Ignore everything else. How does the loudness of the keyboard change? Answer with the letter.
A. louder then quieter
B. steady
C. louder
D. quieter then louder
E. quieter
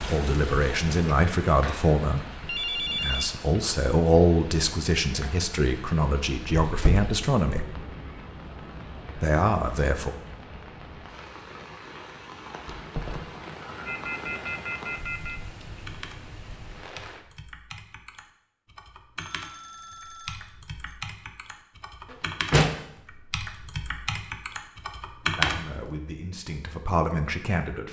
C.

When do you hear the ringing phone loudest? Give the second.
3 s.